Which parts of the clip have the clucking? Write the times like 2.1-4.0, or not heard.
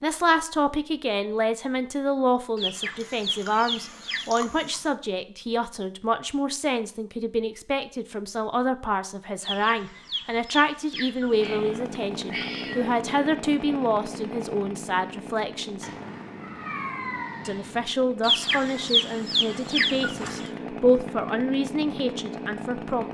2.5-4.2, 9.4-11.6, 18.2-20.5.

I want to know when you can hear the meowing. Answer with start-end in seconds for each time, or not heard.
3.0-4.9, 11.4-12.9, 15.8-17.9.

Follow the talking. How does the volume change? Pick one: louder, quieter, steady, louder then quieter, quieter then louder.
steady.